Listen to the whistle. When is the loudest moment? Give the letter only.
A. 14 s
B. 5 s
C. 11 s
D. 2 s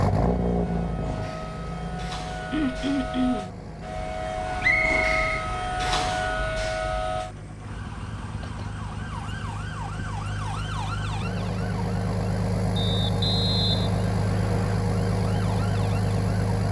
B.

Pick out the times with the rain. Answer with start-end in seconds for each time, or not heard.
not heard.